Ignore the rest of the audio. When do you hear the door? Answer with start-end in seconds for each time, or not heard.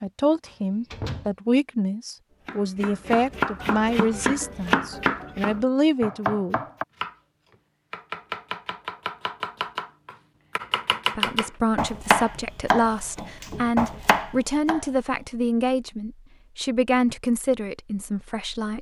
0.5-1.4.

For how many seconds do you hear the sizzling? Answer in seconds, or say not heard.
not heard.